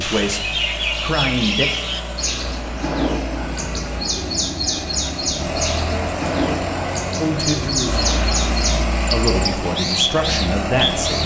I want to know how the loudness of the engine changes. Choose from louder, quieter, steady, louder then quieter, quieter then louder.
louder.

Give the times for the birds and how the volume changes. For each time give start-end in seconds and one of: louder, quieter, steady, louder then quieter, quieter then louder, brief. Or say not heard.
0.0-11.2 steady.